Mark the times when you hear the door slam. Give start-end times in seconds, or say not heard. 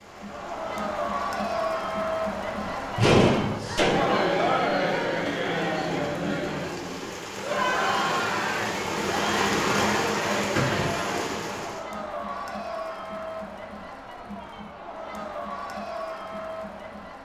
3.0-4.2, 10.5-11.1.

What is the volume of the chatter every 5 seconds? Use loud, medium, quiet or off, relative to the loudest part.
loud, loud, medium, medium.